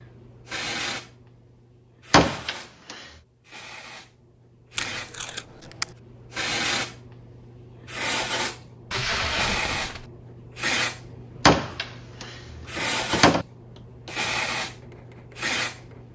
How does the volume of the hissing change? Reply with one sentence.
The volume of the hissing goes up.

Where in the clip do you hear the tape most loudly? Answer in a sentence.
The volume of the tape peaks at 9 seconds.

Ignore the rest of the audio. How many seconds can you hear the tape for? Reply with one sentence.
The tape can be heard for 2 seconds in total.